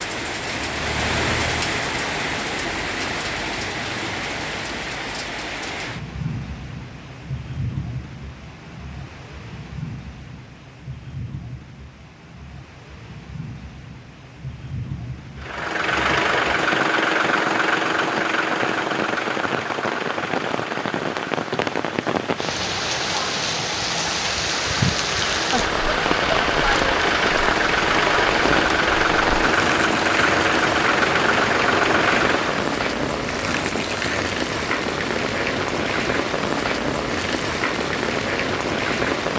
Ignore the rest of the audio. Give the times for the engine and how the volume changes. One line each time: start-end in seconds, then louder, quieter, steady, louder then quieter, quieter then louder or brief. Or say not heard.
15.4-32.8 quieter then louder.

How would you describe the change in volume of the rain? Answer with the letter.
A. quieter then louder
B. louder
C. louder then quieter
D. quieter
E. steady
A.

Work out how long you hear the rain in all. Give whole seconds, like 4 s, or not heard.
39 s.